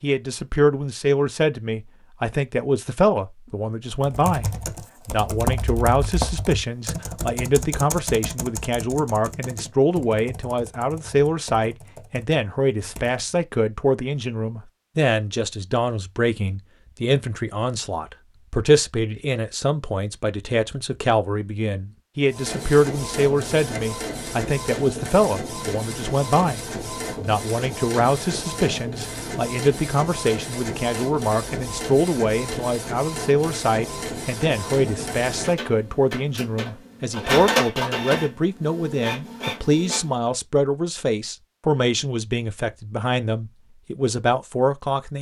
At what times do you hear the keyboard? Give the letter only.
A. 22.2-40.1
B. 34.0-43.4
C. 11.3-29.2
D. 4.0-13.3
D.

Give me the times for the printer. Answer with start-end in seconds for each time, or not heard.
22.2-40.1.